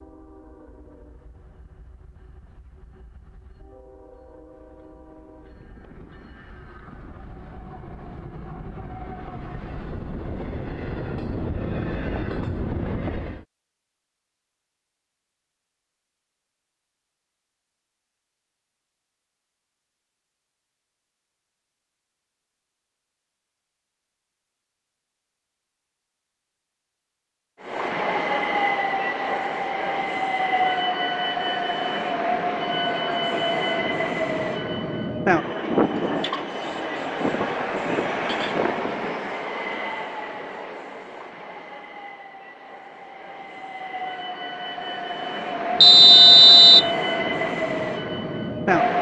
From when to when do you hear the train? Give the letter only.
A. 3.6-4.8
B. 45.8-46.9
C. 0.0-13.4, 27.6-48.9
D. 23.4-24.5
C.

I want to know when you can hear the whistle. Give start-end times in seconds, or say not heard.
45.8-46.9.